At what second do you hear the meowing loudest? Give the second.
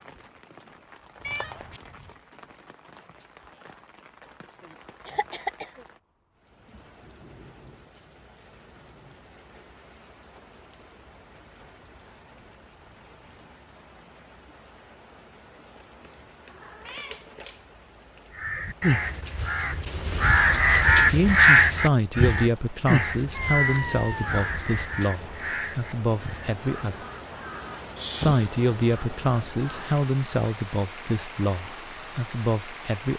24 s.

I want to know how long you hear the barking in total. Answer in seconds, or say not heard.
not heard.